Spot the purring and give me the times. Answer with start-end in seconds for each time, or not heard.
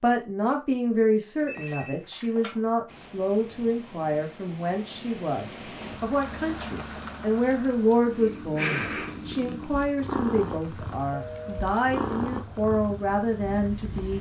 8.1-14.1.